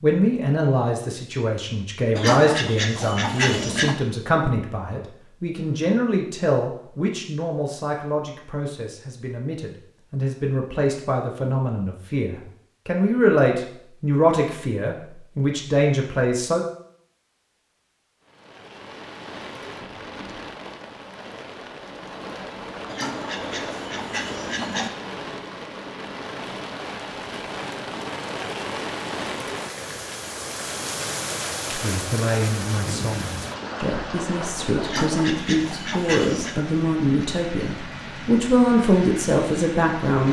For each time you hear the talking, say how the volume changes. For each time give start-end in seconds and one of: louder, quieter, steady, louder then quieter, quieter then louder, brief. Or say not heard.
0.0-16.6 quieter then louder
31.8-40.2 louder.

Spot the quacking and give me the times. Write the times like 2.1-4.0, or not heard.
2.1-4.0, 22.9-24.9, 34.8-36.5.